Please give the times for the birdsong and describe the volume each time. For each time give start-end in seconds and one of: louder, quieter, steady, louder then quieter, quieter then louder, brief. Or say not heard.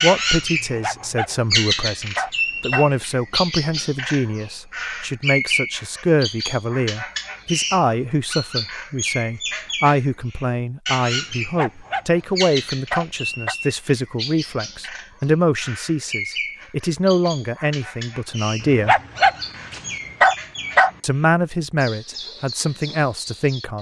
0.0-23.7 quieter.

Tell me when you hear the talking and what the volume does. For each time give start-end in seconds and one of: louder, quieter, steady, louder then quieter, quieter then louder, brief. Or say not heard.
0.0-18.9 steady
21.0-23.7 brief.